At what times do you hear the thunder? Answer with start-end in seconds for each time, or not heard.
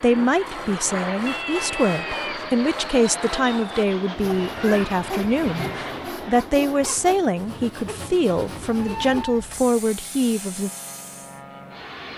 not heard.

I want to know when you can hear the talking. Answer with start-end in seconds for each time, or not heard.
0.0-10.7.